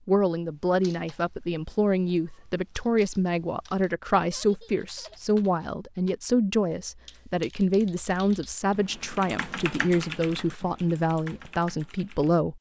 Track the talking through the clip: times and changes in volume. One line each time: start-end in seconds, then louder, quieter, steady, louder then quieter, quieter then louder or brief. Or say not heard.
0.1-12.5 steady.